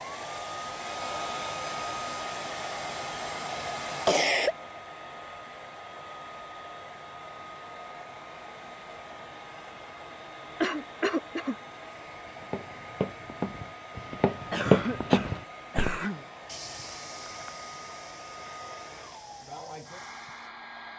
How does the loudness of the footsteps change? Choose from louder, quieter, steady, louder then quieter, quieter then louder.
louder then quieter.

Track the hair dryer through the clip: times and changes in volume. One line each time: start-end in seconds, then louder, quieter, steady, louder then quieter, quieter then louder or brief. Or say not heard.
0.0-20.9 quieter.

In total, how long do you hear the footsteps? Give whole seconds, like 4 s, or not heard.
8 s.